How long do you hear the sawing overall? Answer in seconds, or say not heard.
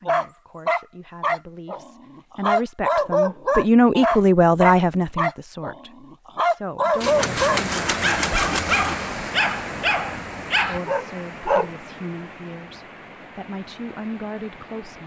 2 s.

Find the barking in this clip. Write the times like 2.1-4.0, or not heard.
0.1-11.7.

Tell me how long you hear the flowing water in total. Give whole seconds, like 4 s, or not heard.
8 s.